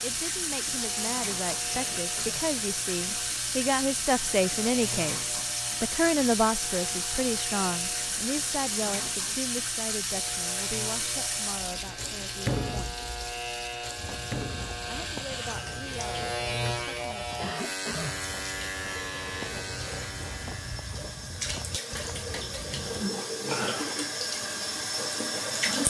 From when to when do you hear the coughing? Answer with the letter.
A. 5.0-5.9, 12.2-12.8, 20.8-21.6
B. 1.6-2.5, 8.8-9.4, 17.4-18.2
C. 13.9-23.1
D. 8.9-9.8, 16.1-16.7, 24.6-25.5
B.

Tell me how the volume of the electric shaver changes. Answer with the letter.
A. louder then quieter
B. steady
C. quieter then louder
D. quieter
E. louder
E.